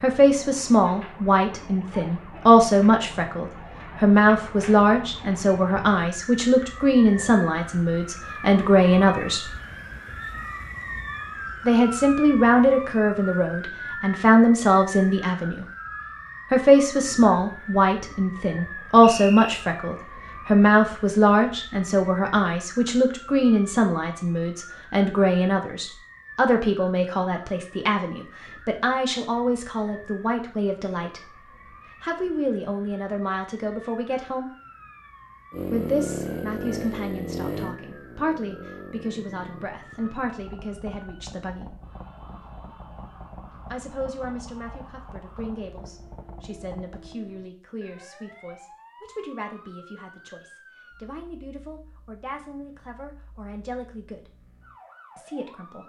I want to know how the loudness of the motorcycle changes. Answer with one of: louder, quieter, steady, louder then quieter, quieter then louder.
quieter.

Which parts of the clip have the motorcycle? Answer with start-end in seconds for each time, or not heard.
35.5-47.1.